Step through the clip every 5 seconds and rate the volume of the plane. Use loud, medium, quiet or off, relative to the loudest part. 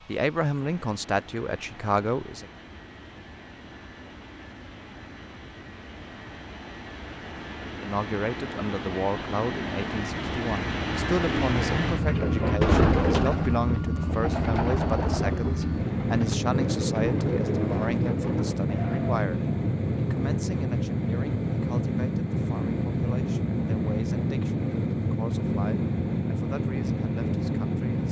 quiet, medium, loud, loud, loud, loud.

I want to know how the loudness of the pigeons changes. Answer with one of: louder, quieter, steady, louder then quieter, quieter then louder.
quieter.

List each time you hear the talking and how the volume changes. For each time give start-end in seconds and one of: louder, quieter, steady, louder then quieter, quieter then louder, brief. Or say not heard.
0.1-2.5 brief
7.8-28.0 quieter.